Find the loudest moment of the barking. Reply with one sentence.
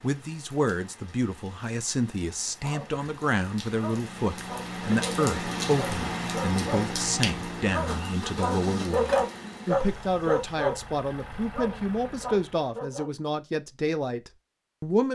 The volume of the barking peaks at 9 seconds.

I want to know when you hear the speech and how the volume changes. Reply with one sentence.
The speech can be heard from 0.0 to 15.0 s, at a steady volume.